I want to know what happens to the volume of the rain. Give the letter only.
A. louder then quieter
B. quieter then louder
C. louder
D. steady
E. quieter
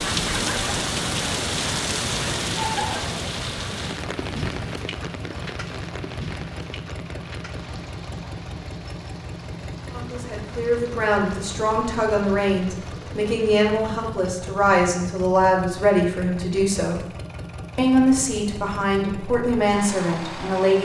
E.